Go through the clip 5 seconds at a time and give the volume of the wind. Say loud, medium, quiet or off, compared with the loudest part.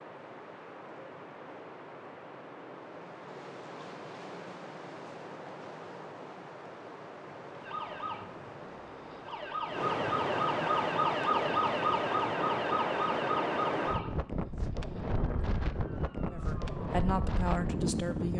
quiet, medium, loud, loud.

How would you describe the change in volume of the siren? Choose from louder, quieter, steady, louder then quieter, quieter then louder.
louder then quieter.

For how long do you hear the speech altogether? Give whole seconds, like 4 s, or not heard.
2 s.